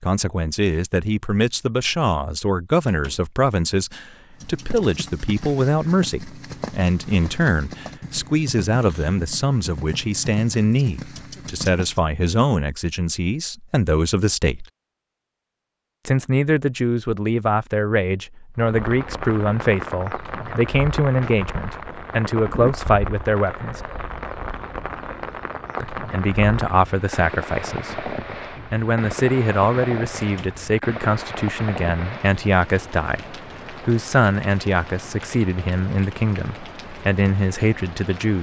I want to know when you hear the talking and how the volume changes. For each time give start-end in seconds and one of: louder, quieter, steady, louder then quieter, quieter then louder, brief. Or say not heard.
0.0-14.7 steady
16.1-23.8 steady
25.8-38.3 steady.